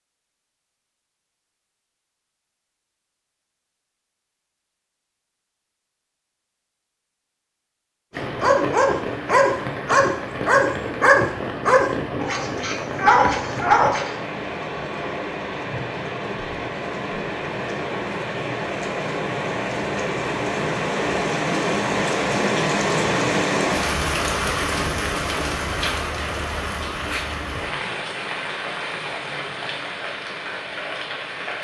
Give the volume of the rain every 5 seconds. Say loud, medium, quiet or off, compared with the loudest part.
off, medium, medium, medium, loud, medium, medium.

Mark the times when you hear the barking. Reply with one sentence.
The barking can be heard from 8.4 to 14.1 s.